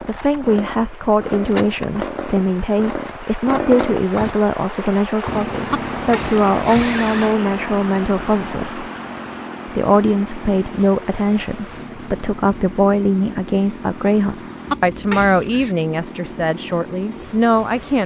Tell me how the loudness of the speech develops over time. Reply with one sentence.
The loudness of the speech stays about the same.